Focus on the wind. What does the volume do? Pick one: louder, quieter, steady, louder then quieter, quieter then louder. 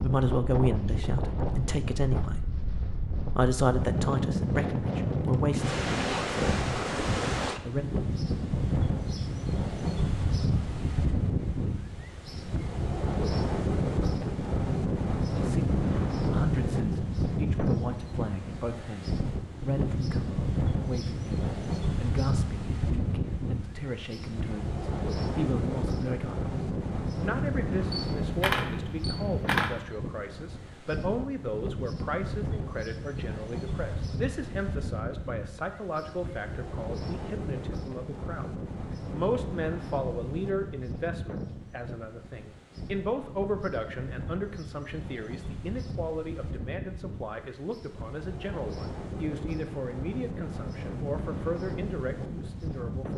quieter.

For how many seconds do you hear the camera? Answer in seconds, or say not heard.
2 s.